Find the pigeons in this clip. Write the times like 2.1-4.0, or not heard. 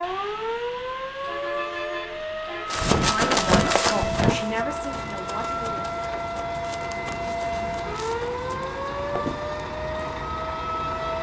not heard.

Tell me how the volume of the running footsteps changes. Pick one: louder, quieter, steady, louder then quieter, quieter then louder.
quieter.